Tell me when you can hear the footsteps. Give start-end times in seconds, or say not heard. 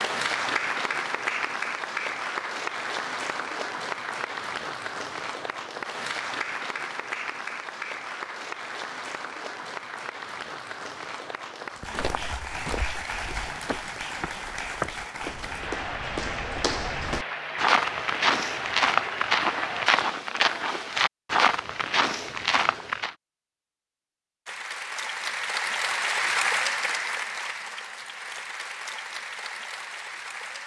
11.9-23.1.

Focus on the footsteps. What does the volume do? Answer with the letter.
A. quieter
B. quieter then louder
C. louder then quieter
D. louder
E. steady
D.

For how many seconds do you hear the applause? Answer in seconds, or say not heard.
26 s.